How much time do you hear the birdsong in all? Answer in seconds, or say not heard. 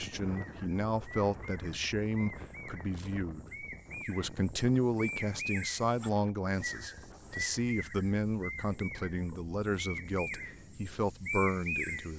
12 s.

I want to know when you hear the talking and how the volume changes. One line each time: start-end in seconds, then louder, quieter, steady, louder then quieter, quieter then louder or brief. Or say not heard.
0.0-12.1 steady.